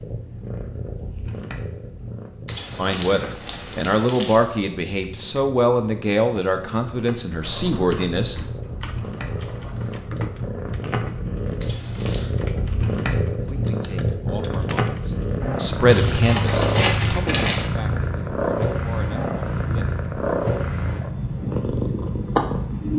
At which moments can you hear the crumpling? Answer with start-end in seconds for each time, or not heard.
2.5-4.5, 11.6-12.3, 15.8-17.7.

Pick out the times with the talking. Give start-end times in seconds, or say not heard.
2.8-8.3, 13.1-20.0.